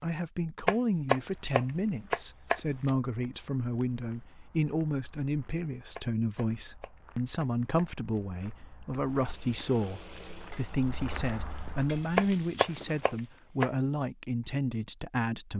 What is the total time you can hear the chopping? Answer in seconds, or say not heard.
6 s.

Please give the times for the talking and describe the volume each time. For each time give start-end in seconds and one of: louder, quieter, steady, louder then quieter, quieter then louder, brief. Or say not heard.
0.0-15.5 steady.